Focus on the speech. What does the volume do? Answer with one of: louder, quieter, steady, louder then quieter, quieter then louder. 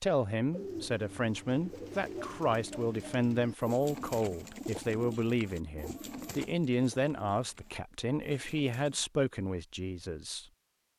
steady.